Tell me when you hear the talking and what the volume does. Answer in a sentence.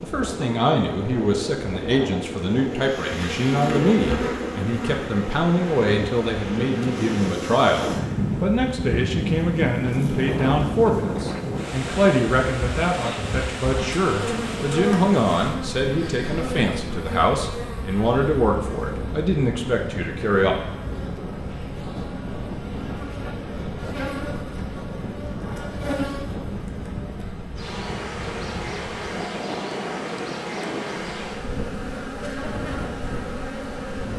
The talking can be heard from 0.0 to 20.6 s, at a steady volume.